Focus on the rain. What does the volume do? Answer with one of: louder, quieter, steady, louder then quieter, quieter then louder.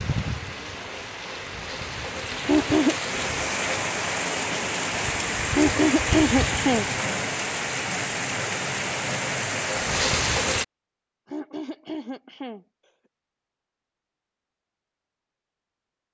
louder.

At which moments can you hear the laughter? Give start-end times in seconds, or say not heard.
2.5-3.0, 5.5-6.8, 11.2-12.7.